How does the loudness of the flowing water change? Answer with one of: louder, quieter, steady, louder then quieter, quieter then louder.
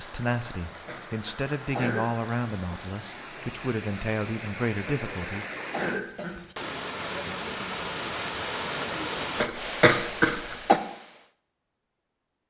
louder.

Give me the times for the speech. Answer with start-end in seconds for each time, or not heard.
0.0-5.5.